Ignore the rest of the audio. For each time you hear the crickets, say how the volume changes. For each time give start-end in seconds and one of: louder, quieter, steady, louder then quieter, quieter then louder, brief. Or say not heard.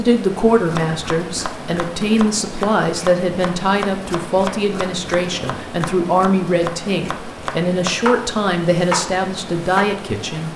not heard.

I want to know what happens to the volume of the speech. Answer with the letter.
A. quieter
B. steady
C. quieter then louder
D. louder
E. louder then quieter
B.